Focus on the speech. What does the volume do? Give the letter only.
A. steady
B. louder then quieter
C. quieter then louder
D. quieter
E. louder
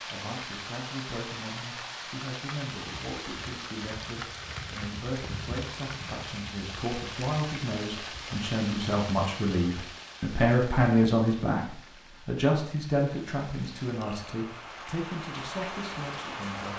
B.